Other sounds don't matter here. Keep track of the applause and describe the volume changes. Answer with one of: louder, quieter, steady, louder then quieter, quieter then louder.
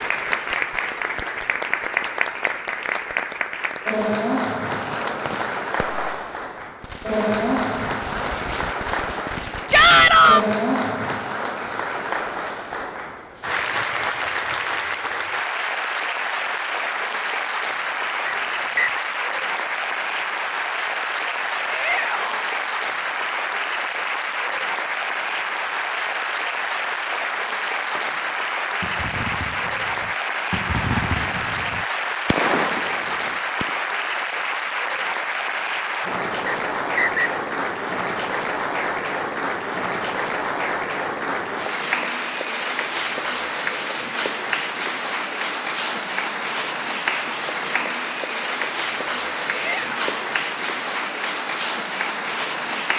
steady.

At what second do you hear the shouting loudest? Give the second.
10 s.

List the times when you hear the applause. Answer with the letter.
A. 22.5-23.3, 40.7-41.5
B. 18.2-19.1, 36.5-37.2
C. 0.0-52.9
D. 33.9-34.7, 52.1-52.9
C.